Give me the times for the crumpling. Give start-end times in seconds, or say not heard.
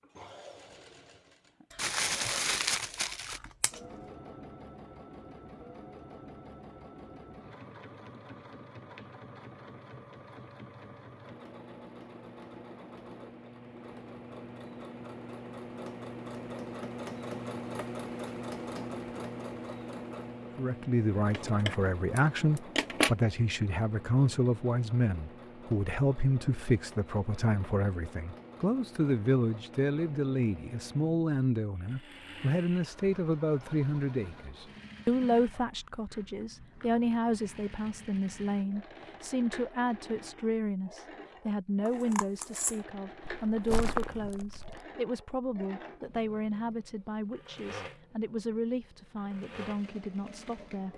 1.8-3.4, 43.5-44.8.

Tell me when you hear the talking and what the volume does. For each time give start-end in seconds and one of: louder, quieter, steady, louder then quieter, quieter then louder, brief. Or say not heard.
20.6-50.9 quieter.